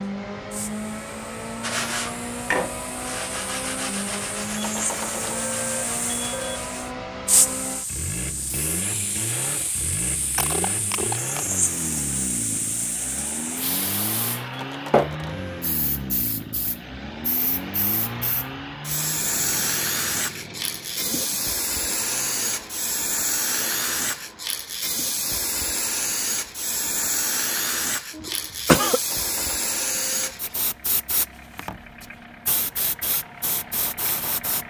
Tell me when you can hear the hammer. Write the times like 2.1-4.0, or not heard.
not heard.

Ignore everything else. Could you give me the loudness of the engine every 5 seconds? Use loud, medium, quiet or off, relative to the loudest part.
loud, loud, loud, loud, medium, quiet, medium.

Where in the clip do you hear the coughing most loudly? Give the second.
29 s.